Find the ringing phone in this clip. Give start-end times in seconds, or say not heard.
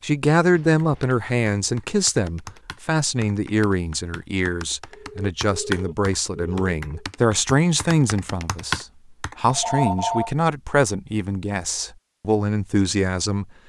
0.6-1.2, 4.9-7.0, 9.4-10.3.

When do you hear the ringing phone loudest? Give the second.
10 s.